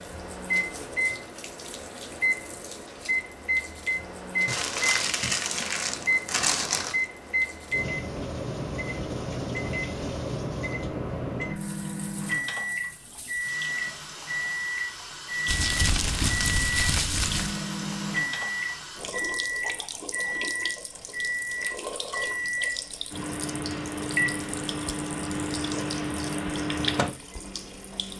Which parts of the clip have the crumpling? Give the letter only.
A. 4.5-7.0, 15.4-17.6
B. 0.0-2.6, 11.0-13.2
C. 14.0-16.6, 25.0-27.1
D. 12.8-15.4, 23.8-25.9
A.